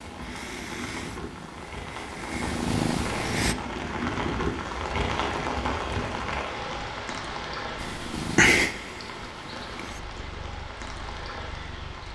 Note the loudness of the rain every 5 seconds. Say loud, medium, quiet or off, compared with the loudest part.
loud, loud, medium.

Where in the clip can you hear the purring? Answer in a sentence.
The purring can be heard from 0.0 to 3.5 s and from 7.8 to 12.0 s.